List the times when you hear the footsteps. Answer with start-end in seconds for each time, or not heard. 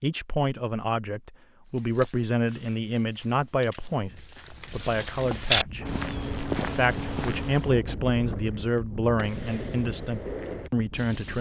1.6-7.8.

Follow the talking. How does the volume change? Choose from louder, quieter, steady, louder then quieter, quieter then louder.
steady.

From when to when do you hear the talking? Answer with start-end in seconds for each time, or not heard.
0.0-5.8, 6.6-11.3.